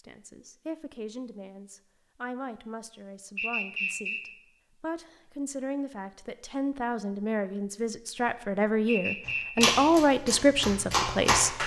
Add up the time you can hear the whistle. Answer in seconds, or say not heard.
2 s.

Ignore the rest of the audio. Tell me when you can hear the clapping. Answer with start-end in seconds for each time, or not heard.
9.2-11.6.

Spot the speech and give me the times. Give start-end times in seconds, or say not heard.
0.0-11.6.